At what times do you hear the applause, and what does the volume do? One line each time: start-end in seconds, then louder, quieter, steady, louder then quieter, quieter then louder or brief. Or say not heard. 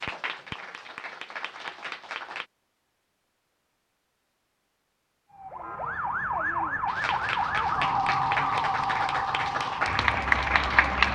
0.0-2.5 brief
6.8-11.0 louder.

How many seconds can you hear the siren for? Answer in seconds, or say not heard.
6 s.